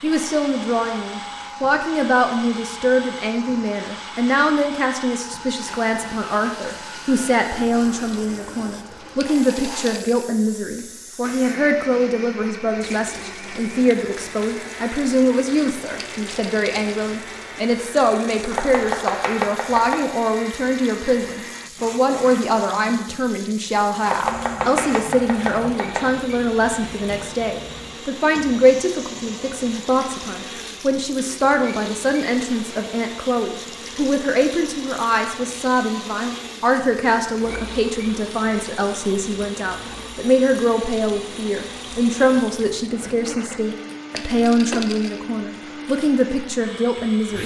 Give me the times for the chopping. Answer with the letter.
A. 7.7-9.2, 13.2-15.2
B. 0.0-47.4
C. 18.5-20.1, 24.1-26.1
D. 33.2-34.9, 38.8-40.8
C.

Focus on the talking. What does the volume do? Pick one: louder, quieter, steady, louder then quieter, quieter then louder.
steady.